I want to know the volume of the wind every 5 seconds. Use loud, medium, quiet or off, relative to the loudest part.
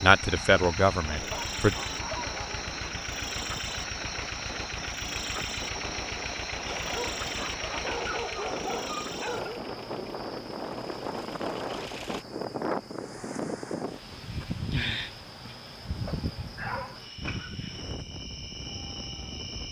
medium, medium, loud, medium.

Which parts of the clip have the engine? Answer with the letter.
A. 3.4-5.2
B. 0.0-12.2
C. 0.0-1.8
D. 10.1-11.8
B.